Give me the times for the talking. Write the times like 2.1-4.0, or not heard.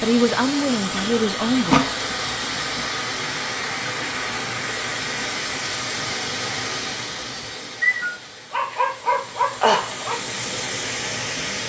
0.0-1.9.